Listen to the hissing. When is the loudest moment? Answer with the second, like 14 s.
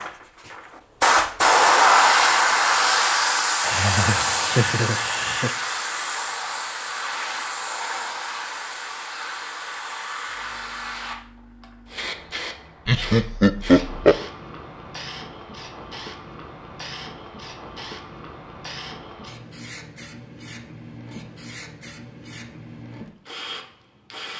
2 s.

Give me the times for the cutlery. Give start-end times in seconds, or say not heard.
not heard.